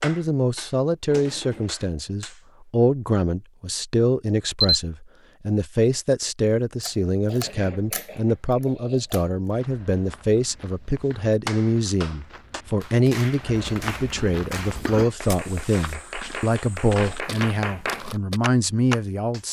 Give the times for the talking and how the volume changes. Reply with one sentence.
The talking can be heard from 0.0 to 19.4 s, at a steady volume.